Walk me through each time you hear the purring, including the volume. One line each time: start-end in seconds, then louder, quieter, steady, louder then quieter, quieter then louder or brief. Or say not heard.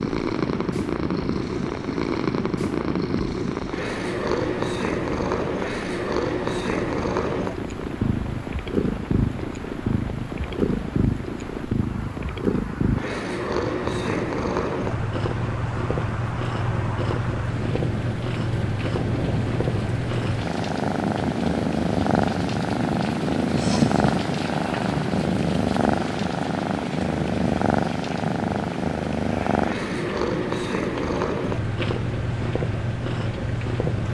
0.0-34.0 steady.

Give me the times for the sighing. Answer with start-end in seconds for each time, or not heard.
23.6-24.1.